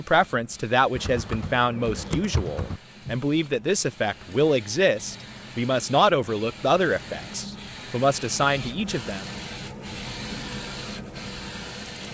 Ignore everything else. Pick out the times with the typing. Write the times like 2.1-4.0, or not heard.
0.9-2.8.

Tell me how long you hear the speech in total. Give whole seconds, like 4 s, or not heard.
9 s.